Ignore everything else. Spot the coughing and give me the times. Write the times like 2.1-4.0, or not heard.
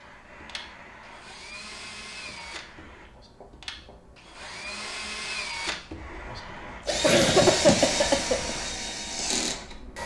7.0-8.5.